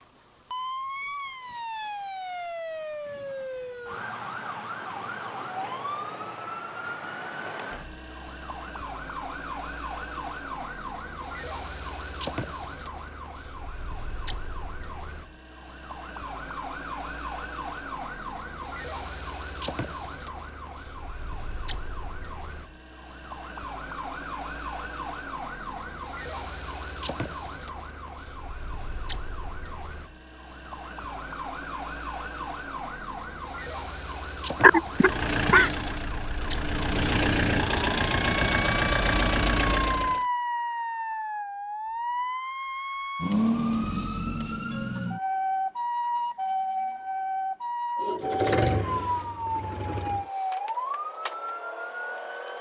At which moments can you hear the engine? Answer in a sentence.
The engine can be heard from 34.9 to 40.2 s and from 48.0 to 50.2 s.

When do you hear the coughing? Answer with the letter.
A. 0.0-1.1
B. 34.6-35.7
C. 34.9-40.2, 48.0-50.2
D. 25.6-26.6
B.